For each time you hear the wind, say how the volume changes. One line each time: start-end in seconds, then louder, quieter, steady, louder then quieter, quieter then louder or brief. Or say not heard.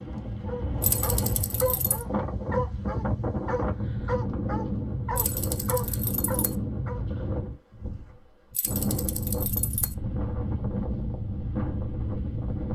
0.0-12.7 steady.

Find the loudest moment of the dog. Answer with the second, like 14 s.
2 s.